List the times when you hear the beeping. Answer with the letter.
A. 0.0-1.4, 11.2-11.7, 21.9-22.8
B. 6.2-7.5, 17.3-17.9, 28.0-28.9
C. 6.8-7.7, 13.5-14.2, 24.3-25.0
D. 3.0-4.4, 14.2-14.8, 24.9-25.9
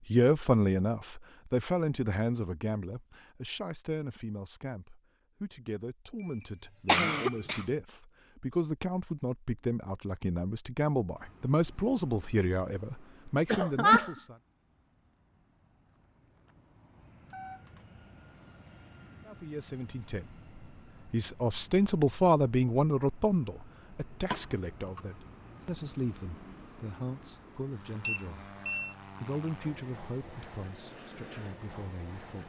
B.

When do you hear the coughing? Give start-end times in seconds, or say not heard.
6.8-7.7, 13.5-14.2, 24.3-25.0.